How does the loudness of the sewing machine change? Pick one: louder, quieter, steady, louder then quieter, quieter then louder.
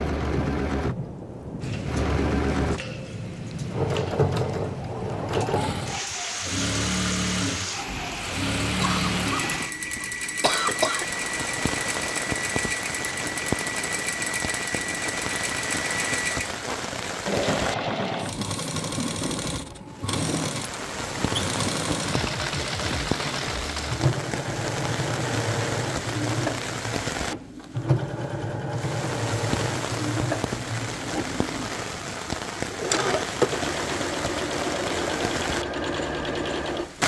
steady.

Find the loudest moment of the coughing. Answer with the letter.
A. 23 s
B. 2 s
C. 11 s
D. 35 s
C.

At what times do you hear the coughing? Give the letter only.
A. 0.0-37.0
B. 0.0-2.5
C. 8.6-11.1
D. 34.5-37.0
C.